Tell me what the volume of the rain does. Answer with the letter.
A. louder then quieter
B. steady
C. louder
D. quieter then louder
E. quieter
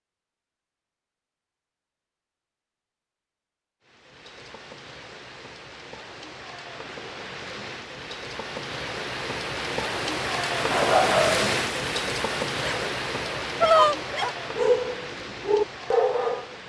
A.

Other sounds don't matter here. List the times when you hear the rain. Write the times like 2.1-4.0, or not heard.
3.8-16.6.